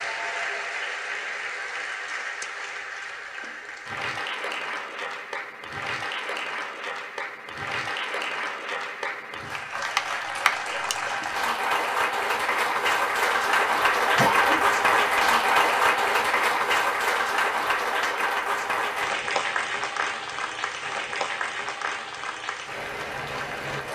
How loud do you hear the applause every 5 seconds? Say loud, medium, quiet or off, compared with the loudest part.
medium, medium, loud, loud, medium.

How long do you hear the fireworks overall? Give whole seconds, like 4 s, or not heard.
not heard.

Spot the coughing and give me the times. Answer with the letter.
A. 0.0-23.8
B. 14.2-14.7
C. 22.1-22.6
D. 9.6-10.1
B.